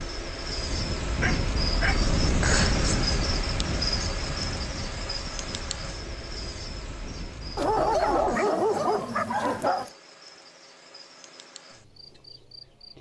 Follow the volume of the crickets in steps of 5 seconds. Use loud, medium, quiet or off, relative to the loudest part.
loud, medium, quiet.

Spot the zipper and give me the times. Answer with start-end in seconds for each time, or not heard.
not heard.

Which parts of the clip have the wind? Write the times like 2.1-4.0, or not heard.
0.0-8.4.